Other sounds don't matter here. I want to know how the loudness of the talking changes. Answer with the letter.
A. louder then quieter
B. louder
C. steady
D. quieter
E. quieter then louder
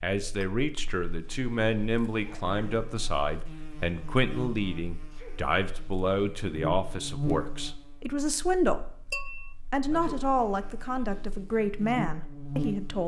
C.